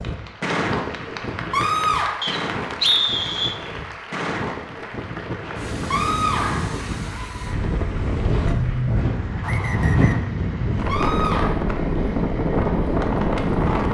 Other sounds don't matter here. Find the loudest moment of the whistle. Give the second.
3 s.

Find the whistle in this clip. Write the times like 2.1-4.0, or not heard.
2.2-3.6, 9.4-10.2.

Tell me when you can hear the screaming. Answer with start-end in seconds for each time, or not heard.
1.5-2.2, 5.9-6.8, 10.8-11.5.